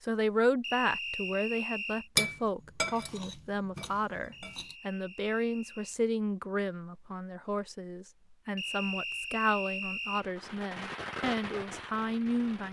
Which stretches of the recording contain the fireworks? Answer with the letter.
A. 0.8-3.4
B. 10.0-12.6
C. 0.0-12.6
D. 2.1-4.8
B.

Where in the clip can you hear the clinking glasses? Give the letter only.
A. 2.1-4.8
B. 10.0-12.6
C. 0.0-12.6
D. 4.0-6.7
A.